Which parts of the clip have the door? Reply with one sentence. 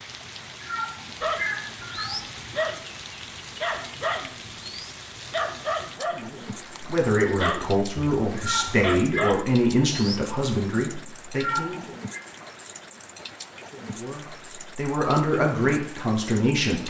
You can't hear the door here.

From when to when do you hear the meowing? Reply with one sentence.
The meowing can be heard from 0.6 to 2.3 s, from 8.3 to 9.3 s and from 11.3 to 12.2 s.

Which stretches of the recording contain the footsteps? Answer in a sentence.
The footsteps can't be heard in this clip.